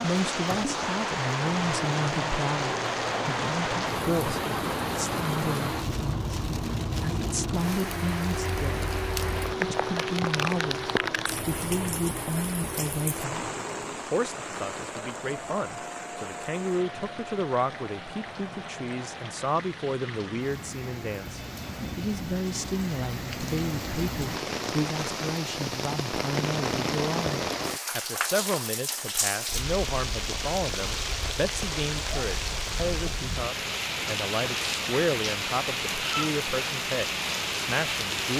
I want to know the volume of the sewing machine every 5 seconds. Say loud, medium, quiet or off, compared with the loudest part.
loud, loud, loud, medium, off, off, off, off.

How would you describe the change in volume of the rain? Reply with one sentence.
The volume of the rain goes down, then up.